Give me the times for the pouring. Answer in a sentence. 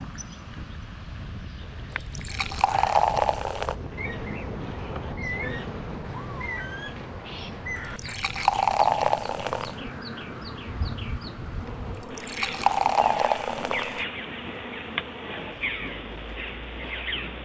You can hear the pouring from 1.9 to 3.8 s, from 7.8 to 9.8 s and from 11.9 to 14.1 s.